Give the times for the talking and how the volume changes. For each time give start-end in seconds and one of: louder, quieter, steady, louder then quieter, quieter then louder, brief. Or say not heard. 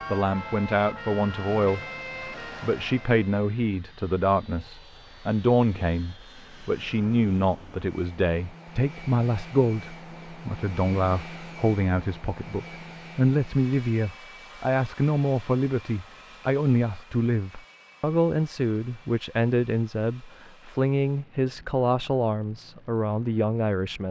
0.1-1.8 brief
2.6-24.0 steady.